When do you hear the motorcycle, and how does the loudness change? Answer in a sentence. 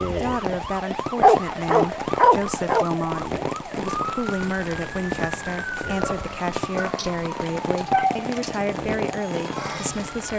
You can't hear the motorcycle here.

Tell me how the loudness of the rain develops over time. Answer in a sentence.
The volume of the rain stays about the same.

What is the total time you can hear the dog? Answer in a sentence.
You can hear the dog for 4 seconds altogether.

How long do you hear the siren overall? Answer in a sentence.
The siren can be heard for 10 seconds in total.